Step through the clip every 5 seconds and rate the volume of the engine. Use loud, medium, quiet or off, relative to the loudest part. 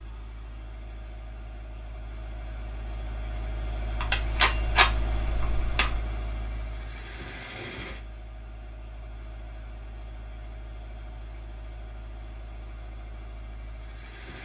loud, loud, medium.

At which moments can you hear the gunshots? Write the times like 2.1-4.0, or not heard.
4.0-6.0.